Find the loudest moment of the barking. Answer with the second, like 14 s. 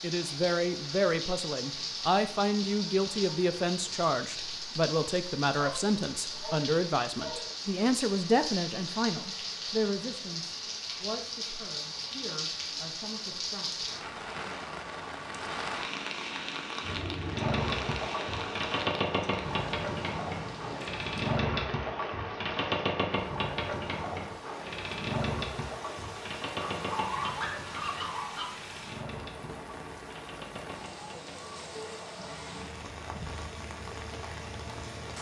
27 s.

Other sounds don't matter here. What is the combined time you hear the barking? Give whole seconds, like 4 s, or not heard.
4 s.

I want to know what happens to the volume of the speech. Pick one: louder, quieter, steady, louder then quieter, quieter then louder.
quieter.